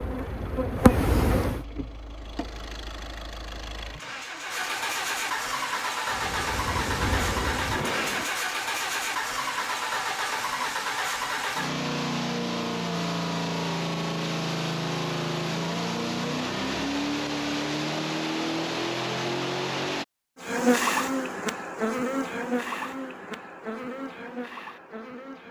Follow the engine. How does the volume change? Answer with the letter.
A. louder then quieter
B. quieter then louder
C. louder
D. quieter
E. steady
C.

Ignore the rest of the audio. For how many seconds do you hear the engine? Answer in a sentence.
You can hear the engine for 20 seconds altogether.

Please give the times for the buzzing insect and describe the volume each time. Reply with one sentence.
The buzzing insect can be heard briefly from 0.0 to 1.6 s; briefly from 6.0 to 8.3 s; and from 20.4 to 25.4 s, getting quieter.